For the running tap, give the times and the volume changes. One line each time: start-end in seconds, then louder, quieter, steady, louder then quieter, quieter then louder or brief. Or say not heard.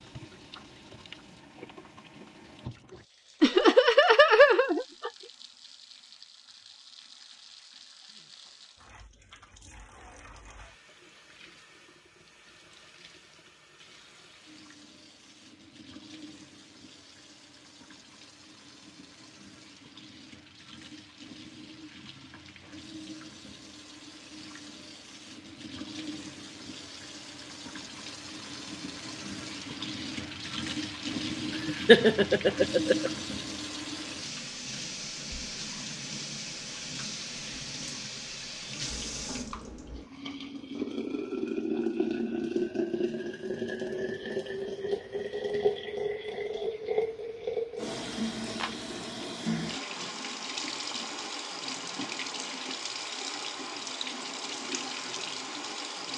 0.0-56.1 louder.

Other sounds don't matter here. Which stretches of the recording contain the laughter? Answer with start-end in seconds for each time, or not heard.
3.4-5.1, 31.6-33.1.